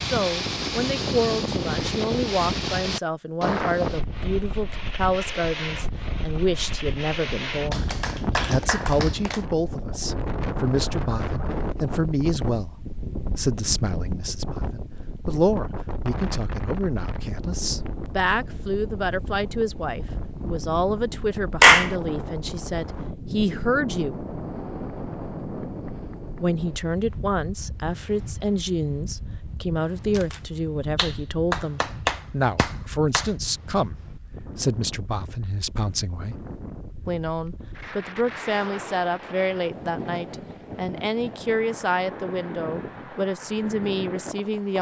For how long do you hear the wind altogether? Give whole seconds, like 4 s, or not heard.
45 s.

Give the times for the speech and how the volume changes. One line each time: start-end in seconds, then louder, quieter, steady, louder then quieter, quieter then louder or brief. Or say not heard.
0.1-24.2 steady
26.4-36.5 steady
37.0-44.7 steady.